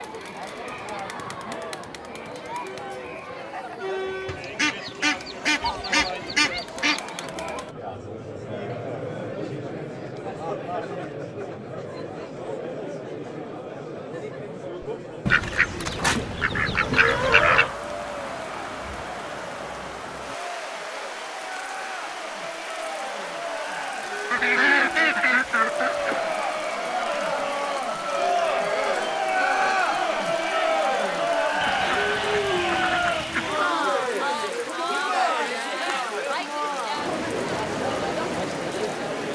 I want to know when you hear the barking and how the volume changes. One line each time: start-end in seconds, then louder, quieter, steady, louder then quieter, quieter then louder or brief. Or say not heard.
not heard.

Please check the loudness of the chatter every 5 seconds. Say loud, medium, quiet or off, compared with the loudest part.
medium, medium, medium, quiet, medium, loud, loud, loud.